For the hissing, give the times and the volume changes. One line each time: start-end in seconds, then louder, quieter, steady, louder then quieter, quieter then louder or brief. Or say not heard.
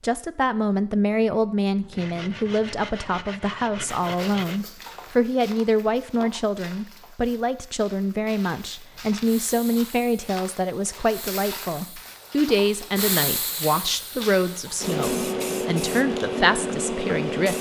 8.9-17.5 louder.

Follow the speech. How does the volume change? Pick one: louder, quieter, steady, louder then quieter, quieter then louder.
steady.